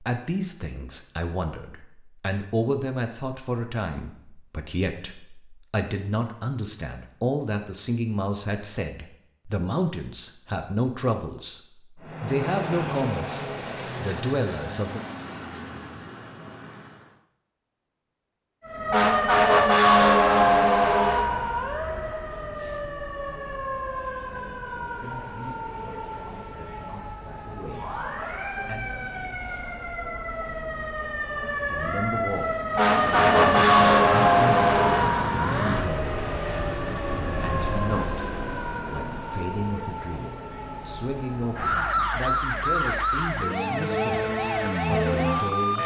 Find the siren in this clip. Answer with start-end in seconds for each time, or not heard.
18.6-45.8.